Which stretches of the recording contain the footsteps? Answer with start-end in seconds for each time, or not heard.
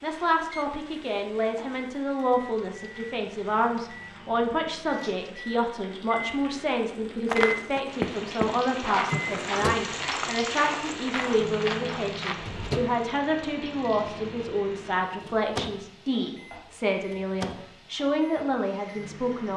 7.2-12.6.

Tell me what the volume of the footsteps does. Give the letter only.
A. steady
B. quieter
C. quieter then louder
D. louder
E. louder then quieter
B.